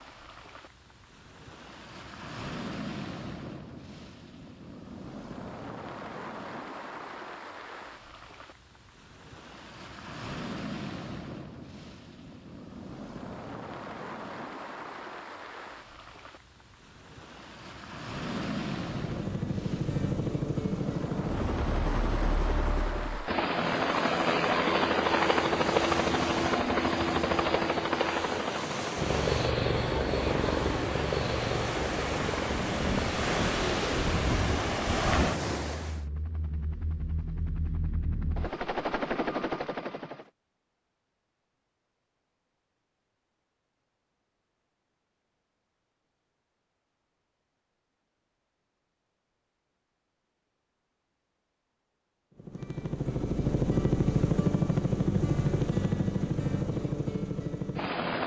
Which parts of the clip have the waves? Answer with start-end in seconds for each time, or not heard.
0.0-36.0.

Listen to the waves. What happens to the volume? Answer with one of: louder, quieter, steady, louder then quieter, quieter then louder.
louder.